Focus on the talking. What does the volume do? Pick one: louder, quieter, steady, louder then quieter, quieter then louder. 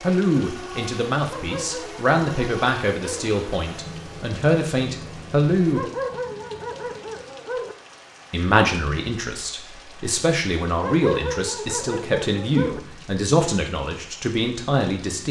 steady.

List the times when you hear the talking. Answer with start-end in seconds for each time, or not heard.
0.0-5.8, 8.3-15.2.